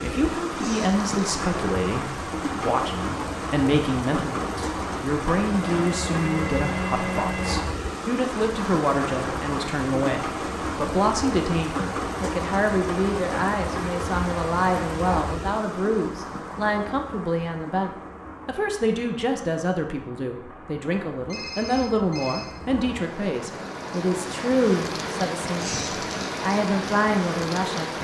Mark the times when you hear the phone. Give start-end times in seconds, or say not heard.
5.7-7.6, 21.2-22.6.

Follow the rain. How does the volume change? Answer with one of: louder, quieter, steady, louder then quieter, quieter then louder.
quieter then louder.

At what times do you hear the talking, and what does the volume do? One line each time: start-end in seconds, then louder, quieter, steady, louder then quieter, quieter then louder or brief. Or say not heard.
0.0-25.7 steady
26.4-27.9 brief.